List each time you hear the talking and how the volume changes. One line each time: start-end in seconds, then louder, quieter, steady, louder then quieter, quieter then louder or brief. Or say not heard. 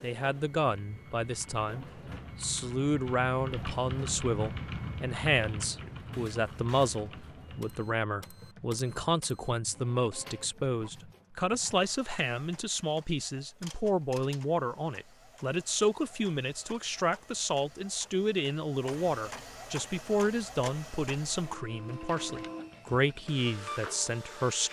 0.0-24.6 steady.